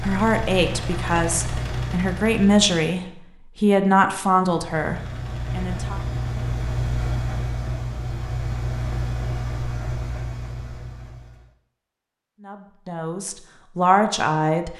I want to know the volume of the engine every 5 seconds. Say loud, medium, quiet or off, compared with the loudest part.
loud, loud, medium.